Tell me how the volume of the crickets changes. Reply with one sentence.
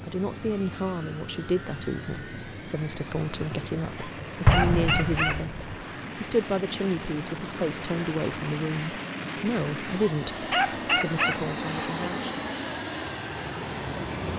The loudness of the crickets goes down.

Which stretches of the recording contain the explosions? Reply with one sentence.
The explosions can be heard from 4.5 to 5.8 s.